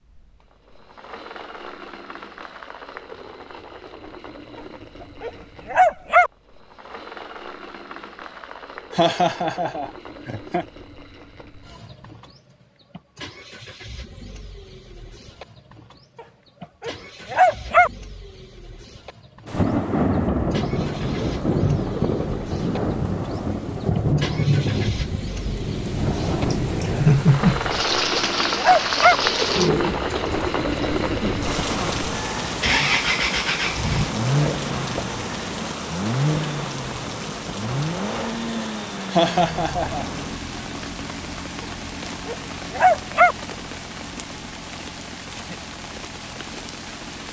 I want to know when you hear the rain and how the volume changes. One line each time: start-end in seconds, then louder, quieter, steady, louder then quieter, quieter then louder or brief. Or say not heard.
19.4-47.2 quieter.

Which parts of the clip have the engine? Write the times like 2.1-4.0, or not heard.
0.0-47.2.